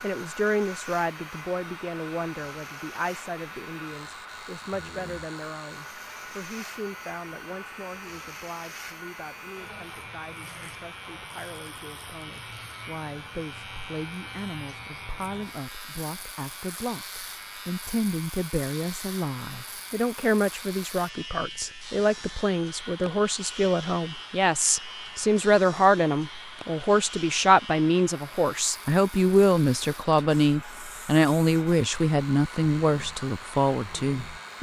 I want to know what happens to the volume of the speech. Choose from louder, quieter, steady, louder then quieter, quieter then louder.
quieter then louder.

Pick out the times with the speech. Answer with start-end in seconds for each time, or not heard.
0.0-34.5.